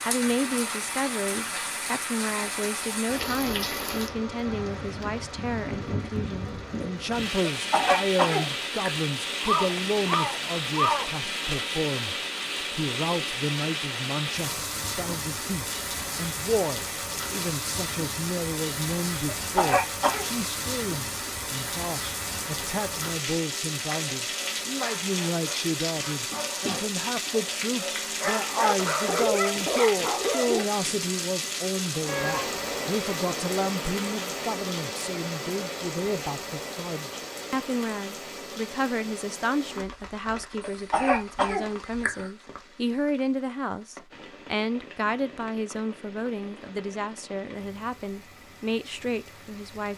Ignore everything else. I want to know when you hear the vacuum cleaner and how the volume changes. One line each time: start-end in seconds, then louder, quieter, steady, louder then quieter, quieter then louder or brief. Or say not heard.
not heard.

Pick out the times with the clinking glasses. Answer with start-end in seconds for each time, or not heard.
not heard.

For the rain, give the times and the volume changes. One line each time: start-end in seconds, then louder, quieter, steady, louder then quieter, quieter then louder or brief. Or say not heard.
0.0-49.9 quieter.